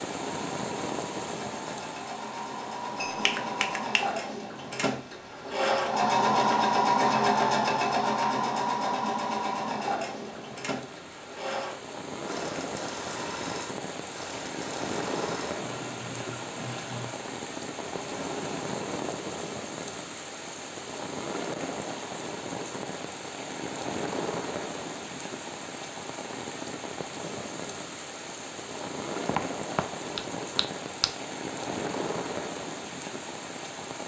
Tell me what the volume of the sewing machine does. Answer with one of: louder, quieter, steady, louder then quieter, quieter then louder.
louder then quieter.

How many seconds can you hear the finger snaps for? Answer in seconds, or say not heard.
3 s.